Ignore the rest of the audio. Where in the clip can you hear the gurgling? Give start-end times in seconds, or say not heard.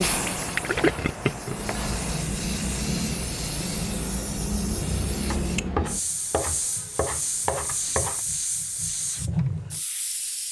0.1-1.8.